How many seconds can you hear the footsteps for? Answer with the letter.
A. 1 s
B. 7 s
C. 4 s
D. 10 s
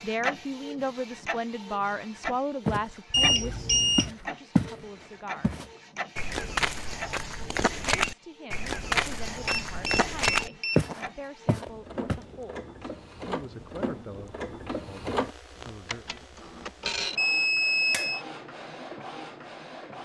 D.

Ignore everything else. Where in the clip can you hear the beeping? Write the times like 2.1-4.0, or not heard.
3.1-4.1, 9.4-10.9, 17.1-18.2.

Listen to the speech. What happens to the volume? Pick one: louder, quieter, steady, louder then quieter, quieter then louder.
quieter.